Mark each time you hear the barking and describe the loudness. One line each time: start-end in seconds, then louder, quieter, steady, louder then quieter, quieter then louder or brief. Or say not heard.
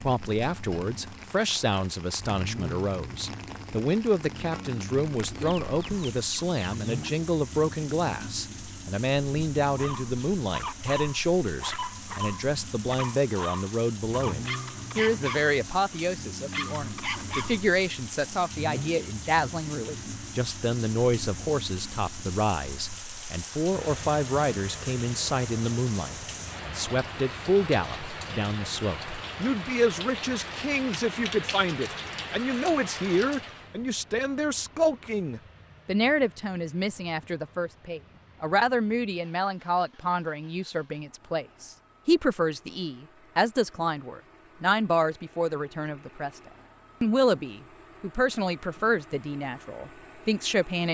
9.8-17.6 steady.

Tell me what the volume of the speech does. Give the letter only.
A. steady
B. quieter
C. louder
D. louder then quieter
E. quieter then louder
A.